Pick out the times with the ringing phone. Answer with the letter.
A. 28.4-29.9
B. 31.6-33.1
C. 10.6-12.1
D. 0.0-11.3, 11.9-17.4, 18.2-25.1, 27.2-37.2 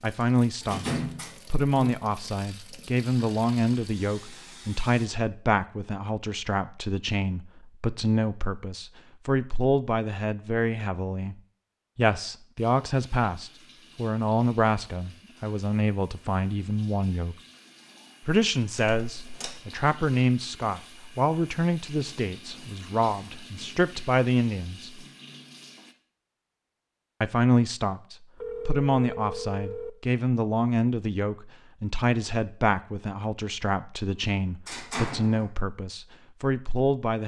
A.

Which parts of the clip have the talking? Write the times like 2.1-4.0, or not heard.
0.0-11.3, 11.9-17.4, 18.2-25.1, 27.2-37.2.